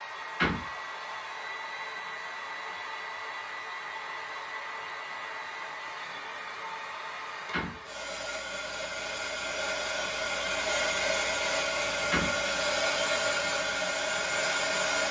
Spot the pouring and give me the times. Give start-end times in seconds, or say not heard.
not heard.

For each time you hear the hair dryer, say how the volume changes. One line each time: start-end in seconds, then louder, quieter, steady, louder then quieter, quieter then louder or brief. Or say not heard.
0.0-15.0 louder.